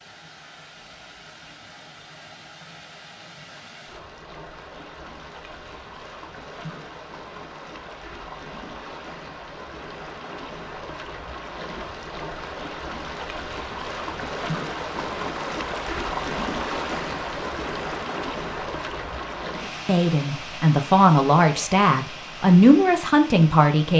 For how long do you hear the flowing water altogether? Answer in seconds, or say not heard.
24 s.